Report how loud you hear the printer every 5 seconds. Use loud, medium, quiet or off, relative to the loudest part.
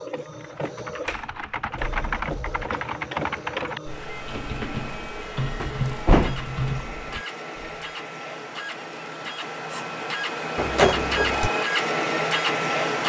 medium, medium, loud.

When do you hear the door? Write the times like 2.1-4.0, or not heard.
1.1-2.8, 5.6-6.5, 10.6-11.5.